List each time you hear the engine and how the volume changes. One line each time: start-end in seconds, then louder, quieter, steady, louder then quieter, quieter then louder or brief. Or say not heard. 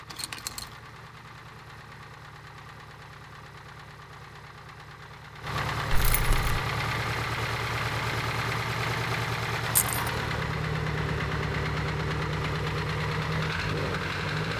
0.0-14.5 louder.